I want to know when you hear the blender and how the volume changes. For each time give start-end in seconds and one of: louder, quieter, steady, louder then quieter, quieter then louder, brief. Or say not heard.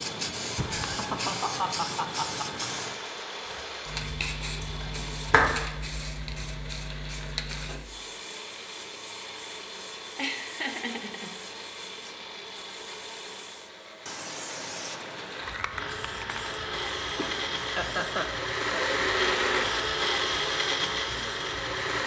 0.0-22.0 louder.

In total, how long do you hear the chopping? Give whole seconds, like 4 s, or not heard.
2 s.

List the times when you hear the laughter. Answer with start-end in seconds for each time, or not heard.
0.6-2.6, 10.2-11.3, 17.1-18.9.